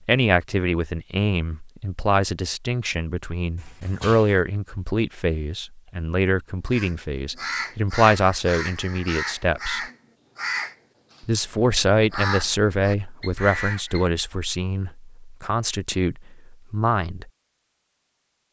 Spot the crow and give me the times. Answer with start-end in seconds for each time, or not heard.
6.7-14.1.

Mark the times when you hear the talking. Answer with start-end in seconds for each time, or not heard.
0.1-9.8, 11.2-17.3.